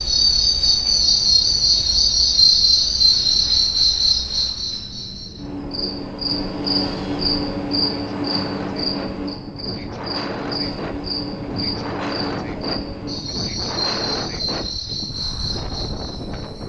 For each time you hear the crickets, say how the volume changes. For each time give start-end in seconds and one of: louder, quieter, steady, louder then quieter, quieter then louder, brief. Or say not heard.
0.0-16.6 quieter.